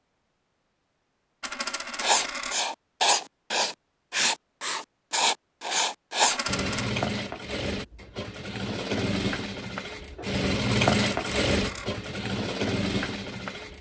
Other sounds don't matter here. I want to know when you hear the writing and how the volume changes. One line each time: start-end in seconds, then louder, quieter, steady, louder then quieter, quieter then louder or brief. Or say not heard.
2.0-6.4 steady.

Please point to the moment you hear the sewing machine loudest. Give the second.
11 s.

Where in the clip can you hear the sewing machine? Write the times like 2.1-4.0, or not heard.
6.5-13.7.